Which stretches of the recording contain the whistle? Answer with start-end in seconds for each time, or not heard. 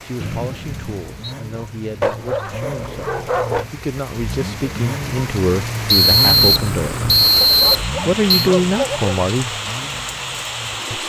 0.2-1.4, 5.8-8.5.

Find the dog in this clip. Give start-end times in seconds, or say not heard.
2.0-3.6, 7.4-9.2.